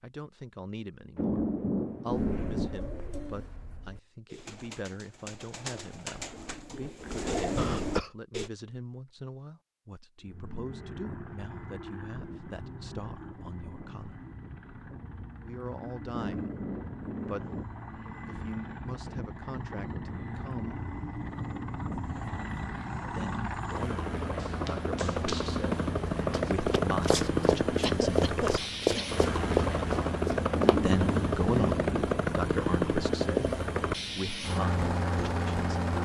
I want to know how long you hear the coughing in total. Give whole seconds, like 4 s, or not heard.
2 s.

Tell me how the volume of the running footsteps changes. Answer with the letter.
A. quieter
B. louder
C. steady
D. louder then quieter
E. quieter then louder
B.